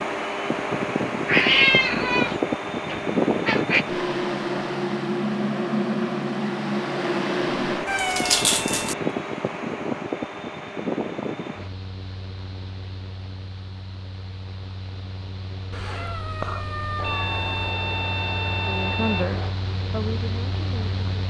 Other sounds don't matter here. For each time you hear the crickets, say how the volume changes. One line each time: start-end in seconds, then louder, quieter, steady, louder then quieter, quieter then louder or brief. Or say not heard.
not heard.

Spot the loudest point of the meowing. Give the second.
2 s.